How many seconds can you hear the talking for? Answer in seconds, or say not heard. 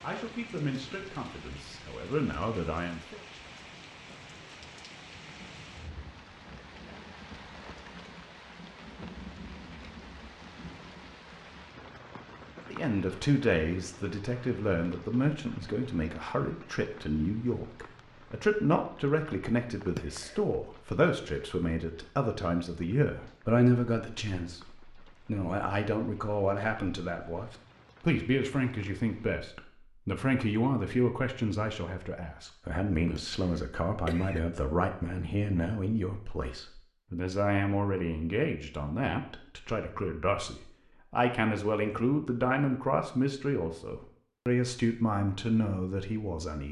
37 s.